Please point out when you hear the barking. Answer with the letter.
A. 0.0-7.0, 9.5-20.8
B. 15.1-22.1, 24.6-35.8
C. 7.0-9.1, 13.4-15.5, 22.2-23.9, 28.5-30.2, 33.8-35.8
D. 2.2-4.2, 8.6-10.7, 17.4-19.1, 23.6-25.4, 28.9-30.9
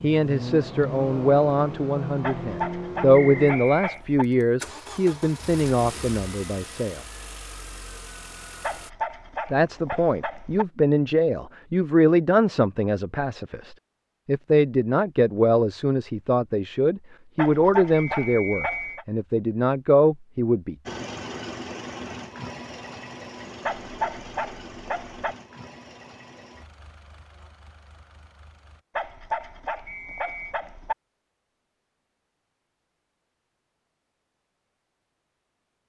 D.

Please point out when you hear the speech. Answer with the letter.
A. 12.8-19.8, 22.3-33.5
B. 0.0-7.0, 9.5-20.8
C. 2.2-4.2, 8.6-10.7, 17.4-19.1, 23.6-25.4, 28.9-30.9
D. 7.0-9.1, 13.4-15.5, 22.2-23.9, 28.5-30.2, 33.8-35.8
B.